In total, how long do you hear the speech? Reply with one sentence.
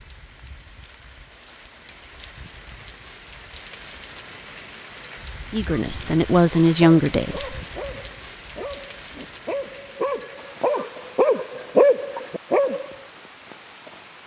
You can hear the speech for 2 seconds altogether.